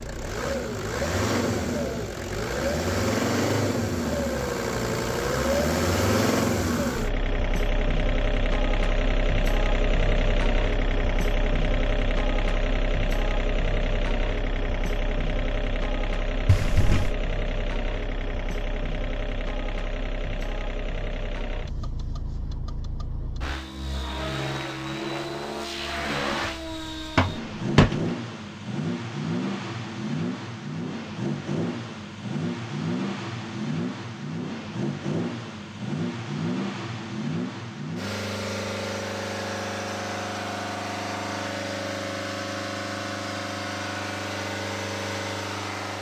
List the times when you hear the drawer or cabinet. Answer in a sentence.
You can hear the drawer or cabinet from 16.4 to 17.1 s and from 27.1 to 28.1 s.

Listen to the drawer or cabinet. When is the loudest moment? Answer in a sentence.
The loudest moment of the drawer or cabinet is at 28 seconds.